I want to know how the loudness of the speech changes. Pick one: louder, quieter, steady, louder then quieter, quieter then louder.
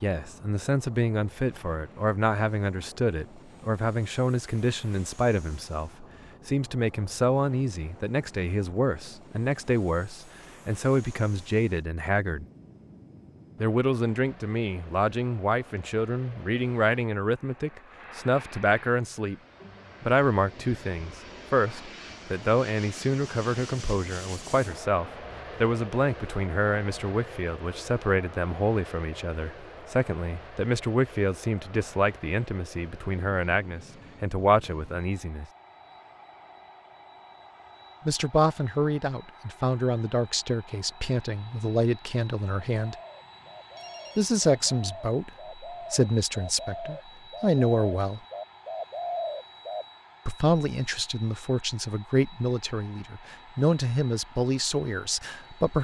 steady.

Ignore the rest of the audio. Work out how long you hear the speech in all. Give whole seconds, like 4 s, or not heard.
48 s.